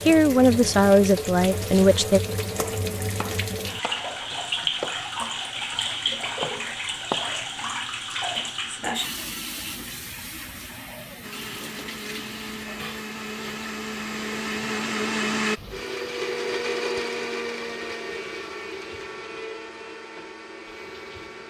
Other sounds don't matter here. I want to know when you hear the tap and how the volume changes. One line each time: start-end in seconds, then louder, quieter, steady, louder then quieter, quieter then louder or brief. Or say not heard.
0.0-21.4 quieter.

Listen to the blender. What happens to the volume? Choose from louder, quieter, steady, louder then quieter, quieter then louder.
louder then quieter.